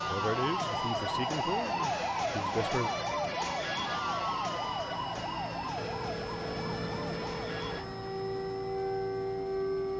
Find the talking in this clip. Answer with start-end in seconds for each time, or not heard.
0.0-2.9.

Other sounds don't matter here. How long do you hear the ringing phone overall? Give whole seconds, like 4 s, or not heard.
2 s.